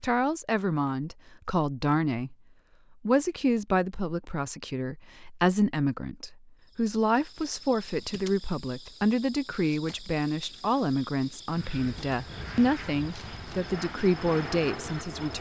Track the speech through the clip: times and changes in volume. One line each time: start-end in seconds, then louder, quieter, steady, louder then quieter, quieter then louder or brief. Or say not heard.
0.0-2.4 brief
3.0-15.3 steady.